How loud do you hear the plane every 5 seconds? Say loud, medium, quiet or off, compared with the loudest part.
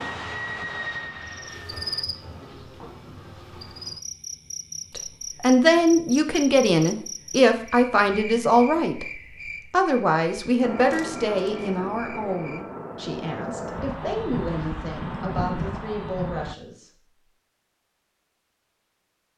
loud, off, loud, loud.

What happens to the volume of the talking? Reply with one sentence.
The volume of the talking goes down.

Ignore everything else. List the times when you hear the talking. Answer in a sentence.
The talking can be heard from 5.0 to 9.1 s and from 9.7 to 17.1 s.